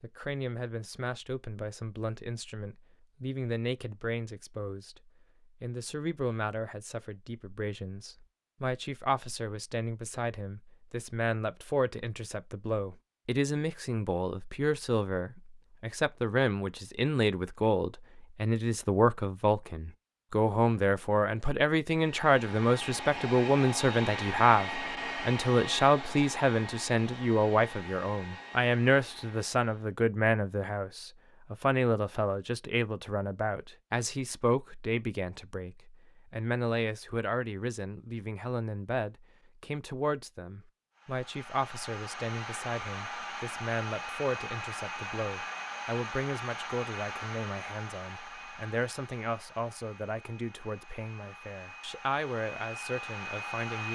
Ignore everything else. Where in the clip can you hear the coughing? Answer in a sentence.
You can't hear the coughing here.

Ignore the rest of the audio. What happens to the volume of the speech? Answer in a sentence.
The loudness of the speech goes up, then down.